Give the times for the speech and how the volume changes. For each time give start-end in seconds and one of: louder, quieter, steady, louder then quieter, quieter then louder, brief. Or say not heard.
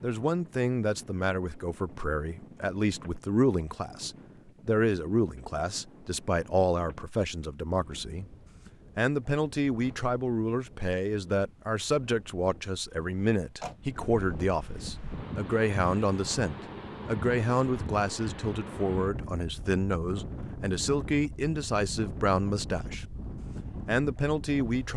0.0-24.9 steady.